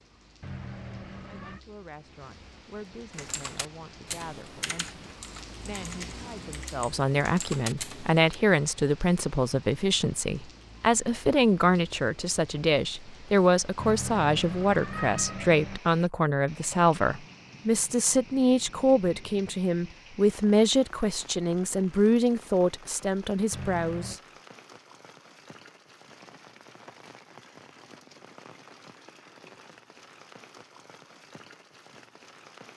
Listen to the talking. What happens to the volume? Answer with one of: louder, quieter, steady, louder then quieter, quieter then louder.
louder.